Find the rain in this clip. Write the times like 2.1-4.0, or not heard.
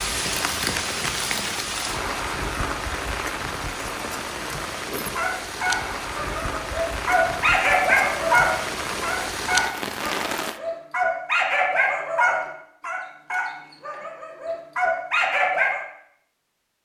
0.0-10.6.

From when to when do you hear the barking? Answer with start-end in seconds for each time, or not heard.
4.9-15.8.